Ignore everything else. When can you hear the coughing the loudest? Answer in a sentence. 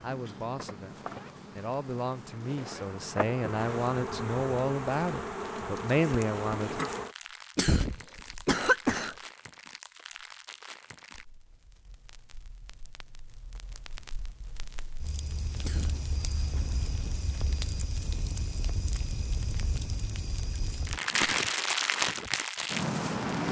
The loudest moment of the coughing is at 9 seconds.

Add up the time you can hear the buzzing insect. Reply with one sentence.
The buzzing insect can be heard for 7 seconds in total.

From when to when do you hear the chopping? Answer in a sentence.
The chopping can't be heard in this clip.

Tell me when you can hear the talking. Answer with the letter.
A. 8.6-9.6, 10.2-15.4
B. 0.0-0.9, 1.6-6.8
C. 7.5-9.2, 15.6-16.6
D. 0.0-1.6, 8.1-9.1
B.